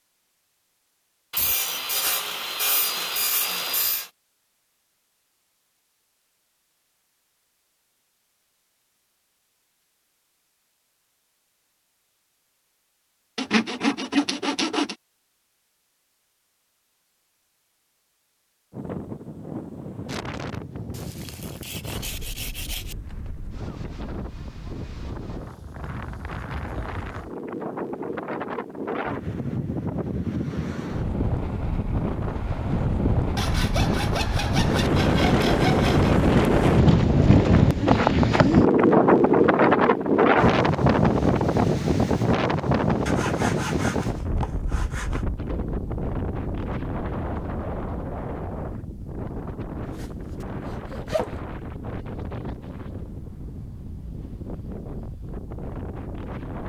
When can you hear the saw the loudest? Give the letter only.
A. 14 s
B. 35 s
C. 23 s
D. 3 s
A.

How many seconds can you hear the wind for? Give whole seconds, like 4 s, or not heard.
38 s.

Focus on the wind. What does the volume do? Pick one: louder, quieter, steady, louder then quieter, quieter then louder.
louder then quieter.